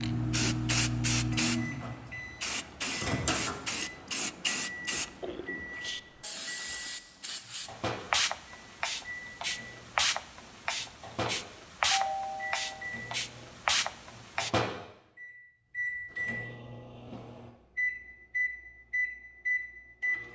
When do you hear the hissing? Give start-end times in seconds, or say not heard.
0.0-14.5.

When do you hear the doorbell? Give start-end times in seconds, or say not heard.
11.9-12.9.